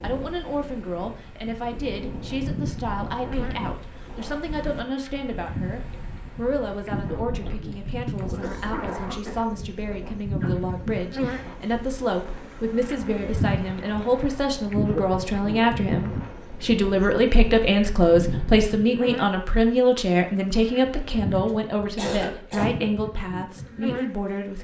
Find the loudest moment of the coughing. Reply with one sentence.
The loudest moment of the coughing is at 22 seconds.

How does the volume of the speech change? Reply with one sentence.
The loudness of the speech goes up.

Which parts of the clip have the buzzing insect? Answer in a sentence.
The buzzing insect can be heard from 2.4 to 24.5 s.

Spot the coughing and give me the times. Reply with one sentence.
The coughing can be heard from 8.3 to 9.5 s and from 21.4 to 22.8 s.